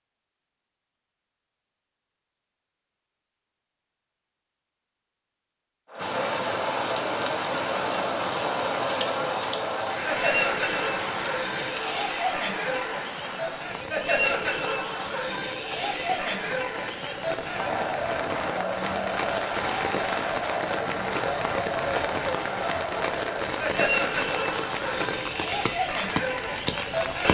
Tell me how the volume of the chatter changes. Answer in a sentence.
The loudness of the chatter stays about the same.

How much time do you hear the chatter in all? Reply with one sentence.
You can hear the chatter for 21 seconds altogether.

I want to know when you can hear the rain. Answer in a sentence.
You can hear the rain from 6.0 to 27.2 s.